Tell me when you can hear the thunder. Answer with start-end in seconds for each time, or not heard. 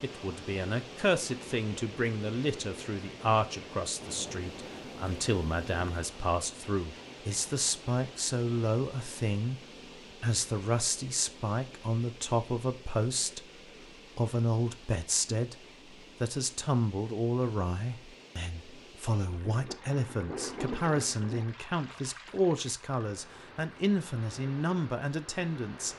4.0-5.9, 19.4-21.4.